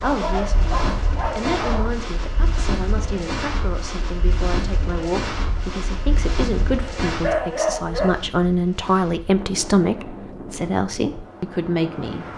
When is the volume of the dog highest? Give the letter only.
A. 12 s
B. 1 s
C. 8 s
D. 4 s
C.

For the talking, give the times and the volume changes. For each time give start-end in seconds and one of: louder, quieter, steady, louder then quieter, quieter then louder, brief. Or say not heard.
0.0-12.3 louder.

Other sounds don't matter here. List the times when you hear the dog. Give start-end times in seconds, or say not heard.
0.0-1.9, 7.0-8.2.